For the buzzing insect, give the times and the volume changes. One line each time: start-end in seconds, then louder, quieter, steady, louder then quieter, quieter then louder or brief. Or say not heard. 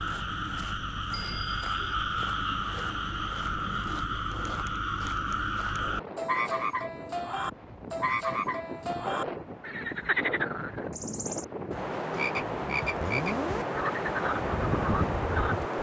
not heard.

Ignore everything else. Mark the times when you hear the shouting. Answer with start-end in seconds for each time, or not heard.
not heard.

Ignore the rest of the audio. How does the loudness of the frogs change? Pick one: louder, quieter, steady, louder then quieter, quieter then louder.
steady.